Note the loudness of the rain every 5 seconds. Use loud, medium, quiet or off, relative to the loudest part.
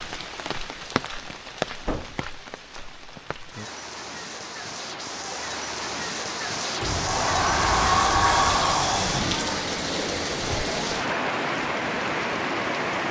medium, loud, loud.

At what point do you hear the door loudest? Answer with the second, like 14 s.
8 s.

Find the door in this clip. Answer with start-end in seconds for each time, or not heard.
1.8-2.2, 6.8-9.3.